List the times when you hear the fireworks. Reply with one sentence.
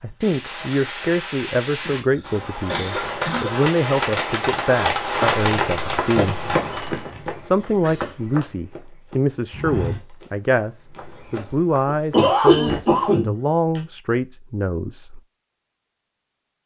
You can hear the fireworks from 0.0 to 7.2 s.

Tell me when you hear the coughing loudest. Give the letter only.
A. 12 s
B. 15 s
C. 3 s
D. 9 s
A.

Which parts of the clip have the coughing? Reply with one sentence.
You can hear the coughing from 1.8 to 3.6 s, from 7.8 to 8.2 s and from 11.8 to 13.3 s.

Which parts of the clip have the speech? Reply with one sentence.
You can hear the speech from 0.0 to 6.4 s and from 7.4 to 15.2 s.